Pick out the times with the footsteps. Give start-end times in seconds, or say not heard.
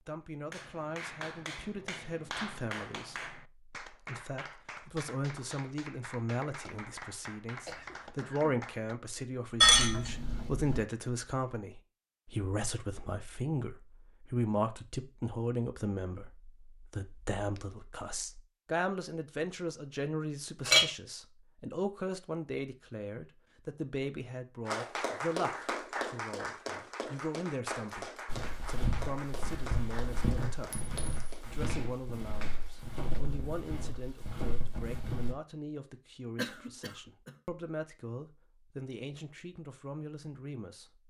28.2-35.4.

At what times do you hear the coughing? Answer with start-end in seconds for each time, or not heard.
7.7-8.6, 36.4-37.4.